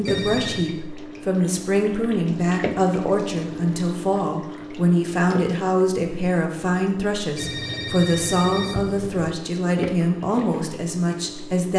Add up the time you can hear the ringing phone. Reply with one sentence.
You can hear the ringing phone for 3 seconds altogether.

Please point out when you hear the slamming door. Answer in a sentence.
The slamming door can't be heard in this clip.